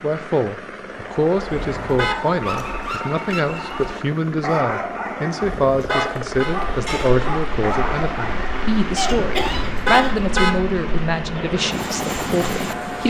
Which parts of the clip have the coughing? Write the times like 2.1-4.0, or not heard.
8.9-10.3.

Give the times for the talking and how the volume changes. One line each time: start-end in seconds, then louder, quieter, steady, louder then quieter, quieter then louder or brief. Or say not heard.
0.0-13.0 steady.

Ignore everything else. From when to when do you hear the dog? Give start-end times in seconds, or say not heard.
0.9-8.7.